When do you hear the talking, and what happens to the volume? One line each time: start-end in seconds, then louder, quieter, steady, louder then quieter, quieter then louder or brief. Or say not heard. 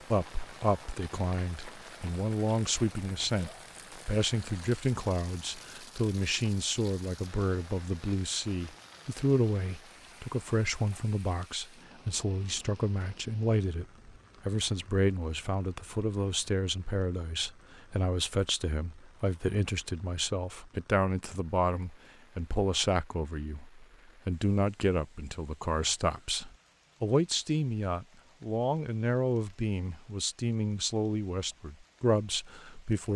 0.1-33.1 steady.